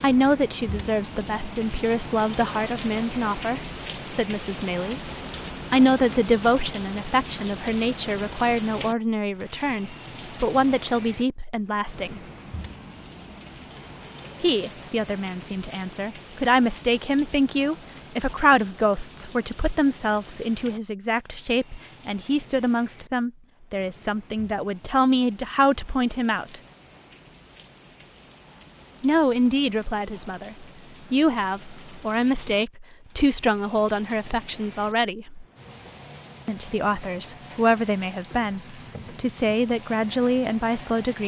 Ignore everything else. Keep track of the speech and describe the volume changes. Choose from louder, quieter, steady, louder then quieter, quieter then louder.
steady.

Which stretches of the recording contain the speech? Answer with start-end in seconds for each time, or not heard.
0.0-12.2, 14.4-26.6, 29.0-35.5, 36.5-41.2.